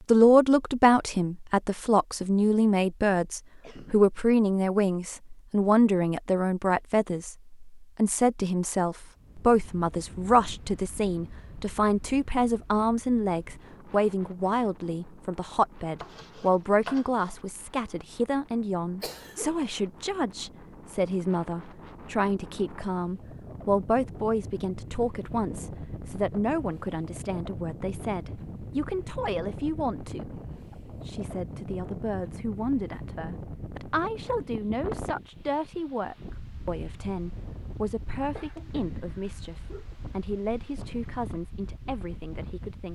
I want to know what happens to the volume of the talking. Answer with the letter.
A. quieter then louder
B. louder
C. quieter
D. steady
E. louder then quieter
C.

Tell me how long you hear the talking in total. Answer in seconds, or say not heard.
42 s.